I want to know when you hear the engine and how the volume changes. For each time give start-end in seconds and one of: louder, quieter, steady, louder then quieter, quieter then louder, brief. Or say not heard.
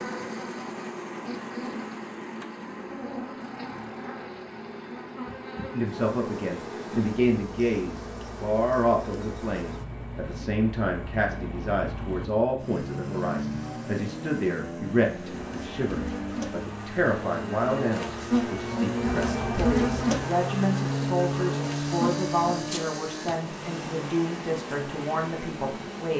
0.0-26.1 louder.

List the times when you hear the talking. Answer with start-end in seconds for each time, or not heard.
5.7-26.1.